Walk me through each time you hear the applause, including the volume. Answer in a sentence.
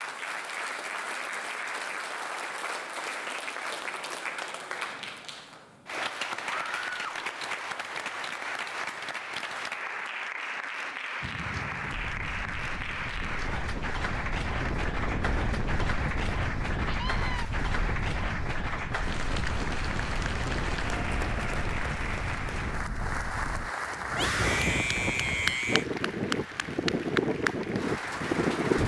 The applause can be heard from 0.0 to 28.8 s, at a steady volume.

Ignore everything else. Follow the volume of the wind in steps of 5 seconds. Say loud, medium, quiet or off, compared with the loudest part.
off, off, medium, medium, medium, loud.